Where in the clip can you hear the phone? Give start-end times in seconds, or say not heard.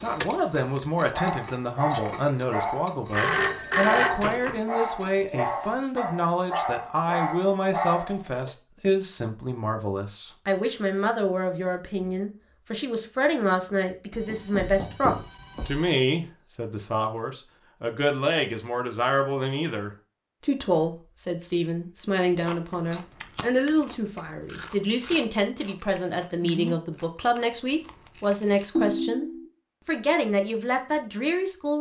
3.1-4.6, 14.1-15.9, 28.8-29.4.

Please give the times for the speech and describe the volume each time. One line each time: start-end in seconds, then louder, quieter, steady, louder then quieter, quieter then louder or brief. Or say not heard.
0.0-31.7 steady.